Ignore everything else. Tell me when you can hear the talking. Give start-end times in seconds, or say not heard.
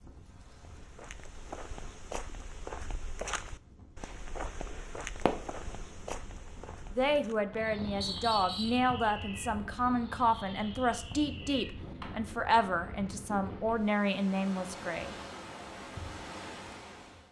7.0-15.2.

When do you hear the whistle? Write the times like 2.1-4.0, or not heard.
8.0-8.8.